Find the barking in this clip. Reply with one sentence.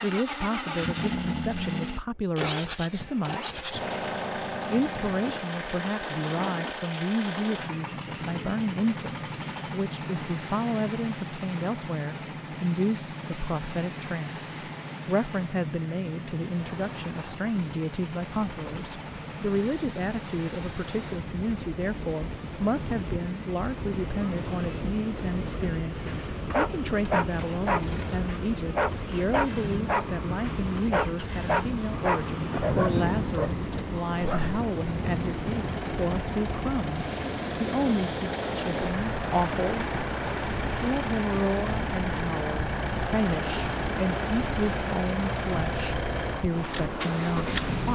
The barking can be heard from 26.1 to 35.4 s.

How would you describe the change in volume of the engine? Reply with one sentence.
The volume of the engine goes down, then up.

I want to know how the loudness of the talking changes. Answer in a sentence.
The volume of the talking stays about the same.